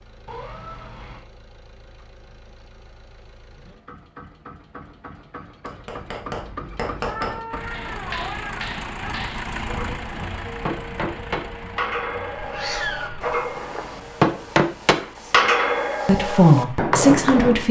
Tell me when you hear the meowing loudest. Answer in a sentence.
The loudest moment of the meowing is at 13 seconds.